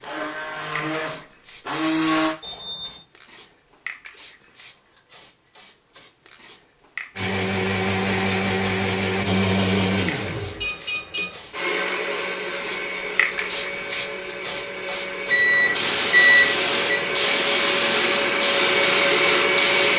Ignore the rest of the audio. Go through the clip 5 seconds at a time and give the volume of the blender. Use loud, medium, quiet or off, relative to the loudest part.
loud, loud, medium, loud.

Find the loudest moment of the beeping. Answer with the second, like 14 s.
16 s.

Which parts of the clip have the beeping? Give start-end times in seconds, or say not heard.
2.4-3.0, 10.4-11.4, 15.3-17.1.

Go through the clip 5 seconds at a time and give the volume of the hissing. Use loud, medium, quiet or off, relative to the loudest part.
quiet, quiet, medium, loud.